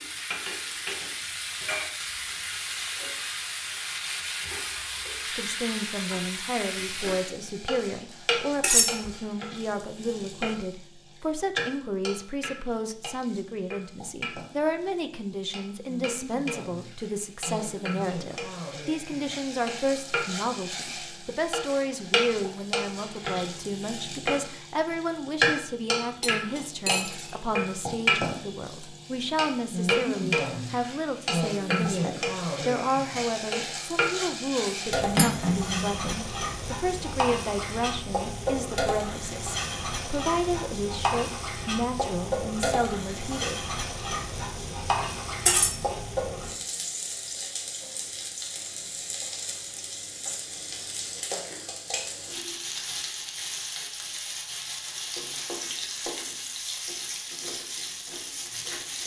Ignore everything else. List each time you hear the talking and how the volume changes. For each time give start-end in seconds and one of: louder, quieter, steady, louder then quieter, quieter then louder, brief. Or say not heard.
5.2-43.8 steady.